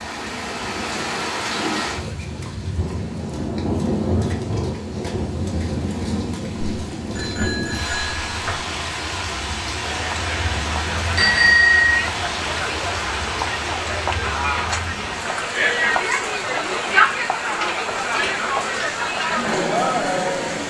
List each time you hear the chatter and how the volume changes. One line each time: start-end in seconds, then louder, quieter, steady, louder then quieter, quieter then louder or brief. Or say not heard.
9.8-20.6 louder.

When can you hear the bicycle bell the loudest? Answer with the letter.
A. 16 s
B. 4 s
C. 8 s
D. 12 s
D.